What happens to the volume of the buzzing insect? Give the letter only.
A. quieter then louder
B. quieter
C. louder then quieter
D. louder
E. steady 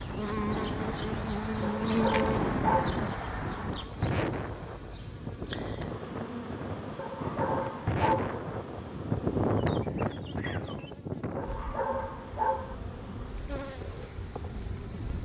B.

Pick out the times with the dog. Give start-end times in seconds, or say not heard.
1.6-3.0, 7.0-8.4, 11.3-12.8.